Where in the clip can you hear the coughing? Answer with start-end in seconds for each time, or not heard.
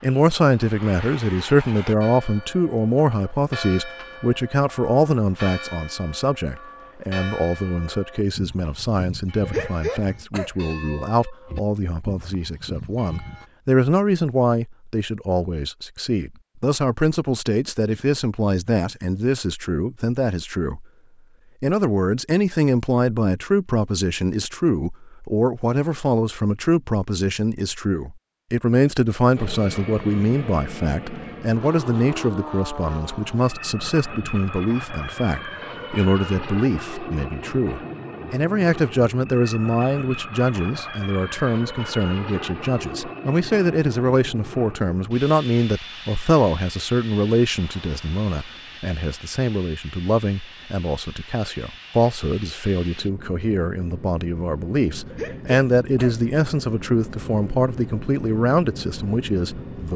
9.4-10.8, 55.1-56.1.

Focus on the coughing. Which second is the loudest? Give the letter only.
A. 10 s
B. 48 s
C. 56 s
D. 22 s
A.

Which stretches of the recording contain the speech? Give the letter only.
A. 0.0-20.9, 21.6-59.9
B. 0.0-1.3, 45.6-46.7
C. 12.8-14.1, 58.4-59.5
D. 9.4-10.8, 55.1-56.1
A.